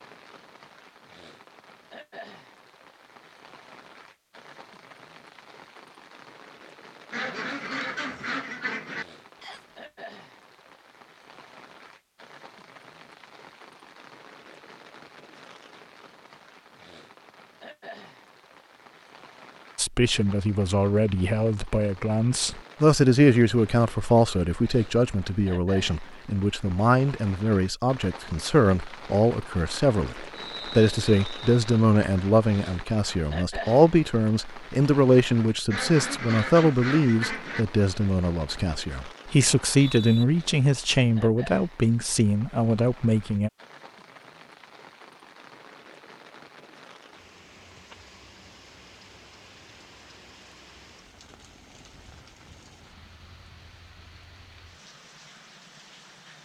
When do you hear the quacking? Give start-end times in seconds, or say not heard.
7.1-9.1, 35.7-37.6.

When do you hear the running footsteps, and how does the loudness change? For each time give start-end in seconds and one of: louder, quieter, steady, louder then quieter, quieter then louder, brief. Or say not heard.
not heard.